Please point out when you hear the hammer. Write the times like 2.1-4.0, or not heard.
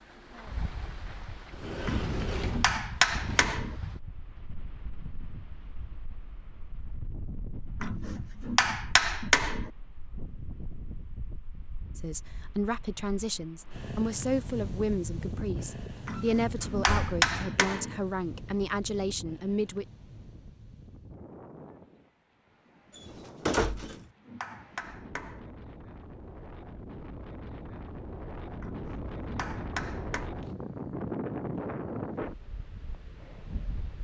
1.9-3.8, 7.8-9.7, 16.1-17.9, 23.6-25.5, 28.6-30.3.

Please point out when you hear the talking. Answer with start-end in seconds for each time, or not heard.
11.9-19.9.